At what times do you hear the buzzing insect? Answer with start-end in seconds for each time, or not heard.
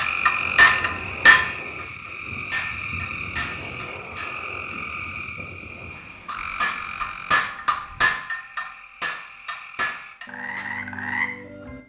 not heard.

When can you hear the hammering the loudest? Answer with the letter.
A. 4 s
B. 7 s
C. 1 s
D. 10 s
C.